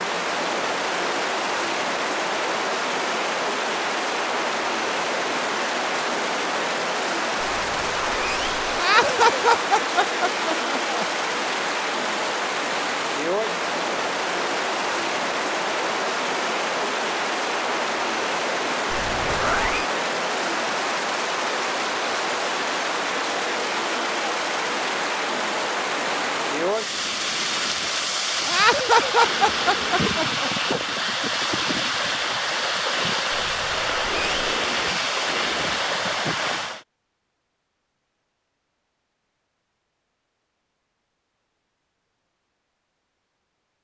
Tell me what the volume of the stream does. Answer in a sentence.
The volume of the stream stays about the same.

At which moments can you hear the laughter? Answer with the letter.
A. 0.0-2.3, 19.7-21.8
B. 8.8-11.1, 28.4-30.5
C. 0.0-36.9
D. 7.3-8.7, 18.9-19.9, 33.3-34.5
B.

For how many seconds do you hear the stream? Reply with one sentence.
The stream can be heard for 37 seconds in total.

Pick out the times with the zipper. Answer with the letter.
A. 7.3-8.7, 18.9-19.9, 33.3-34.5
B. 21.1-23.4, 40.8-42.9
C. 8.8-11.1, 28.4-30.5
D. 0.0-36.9
A.